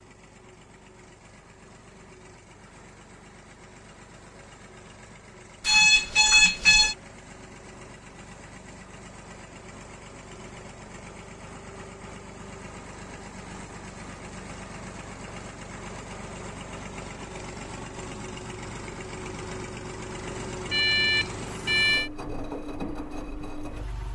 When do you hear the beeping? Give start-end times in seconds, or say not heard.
5.7-7.0, 20.7-22.1.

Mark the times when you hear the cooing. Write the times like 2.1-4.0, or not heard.
not heard.